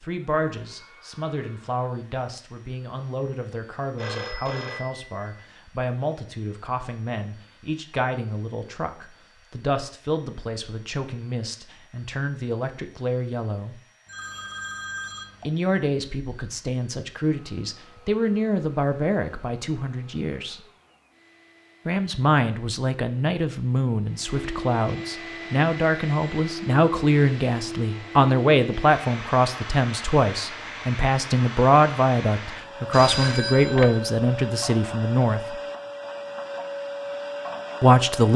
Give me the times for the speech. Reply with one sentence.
The speech can be heard from 0.0 to 13.8 s, from 15.4 to 20.6 s, from 21.9 to 35.4 s and from 37.8 to 38.3 s.